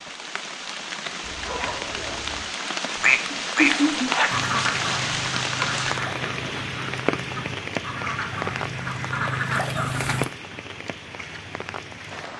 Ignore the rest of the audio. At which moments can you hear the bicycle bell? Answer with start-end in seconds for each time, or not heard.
not heard.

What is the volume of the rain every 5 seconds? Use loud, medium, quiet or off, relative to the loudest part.
loud, loud, medium.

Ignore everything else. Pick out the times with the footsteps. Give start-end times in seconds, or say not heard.
not heard.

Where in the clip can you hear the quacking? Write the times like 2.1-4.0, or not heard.
3.0-10.2.